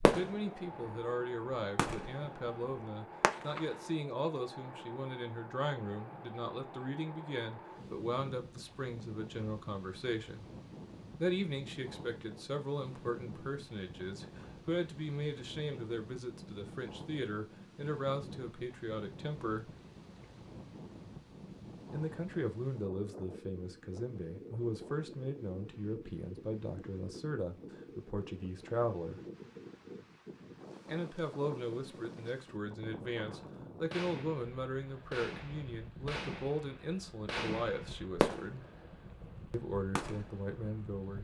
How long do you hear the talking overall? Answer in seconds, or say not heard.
36 s.